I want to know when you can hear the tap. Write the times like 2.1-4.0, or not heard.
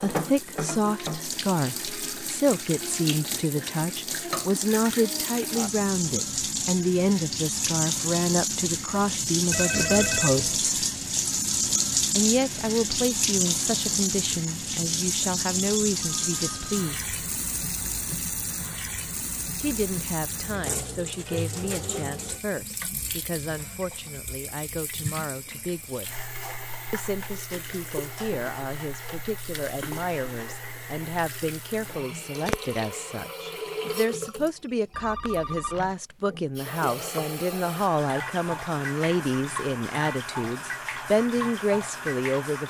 0.0-42.6.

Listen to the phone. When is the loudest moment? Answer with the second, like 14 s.
10 s.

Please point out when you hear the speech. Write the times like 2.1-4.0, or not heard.
0.0-10.8, 12.2-17.1, 19.6-26.2, 26.9-42.6.